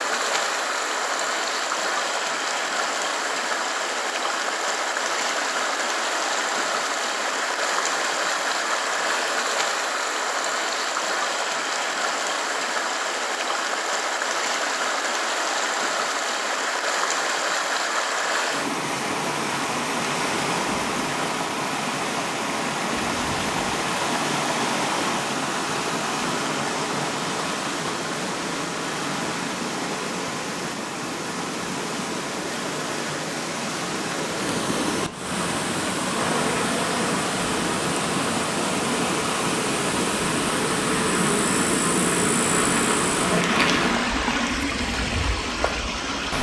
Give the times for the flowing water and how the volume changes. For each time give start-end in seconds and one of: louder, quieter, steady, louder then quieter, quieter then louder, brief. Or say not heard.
0.0-46.3 steady.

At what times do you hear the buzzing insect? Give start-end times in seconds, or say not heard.
36.1-44.0.